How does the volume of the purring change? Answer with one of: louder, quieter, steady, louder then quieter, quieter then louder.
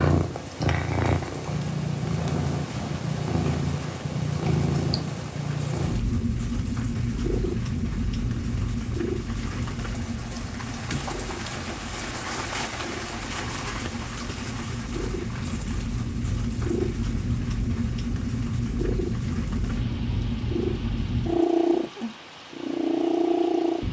quieter then louder.